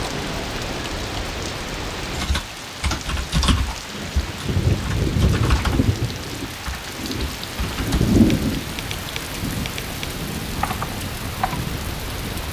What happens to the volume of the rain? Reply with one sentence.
The volume of the rain goes up, then down.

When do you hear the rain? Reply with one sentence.
You can hear the rain from 0.0 to 12.4 s.